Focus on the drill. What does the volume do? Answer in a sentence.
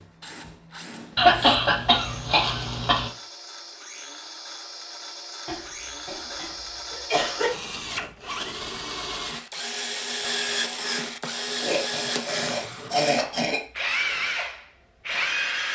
The volume of the drill goes up.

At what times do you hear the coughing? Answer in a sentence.
The coughing can be heard from 1.1 to 3.1 s, from 5.5 to 7.5 s and from 11.6 to 13.6 s.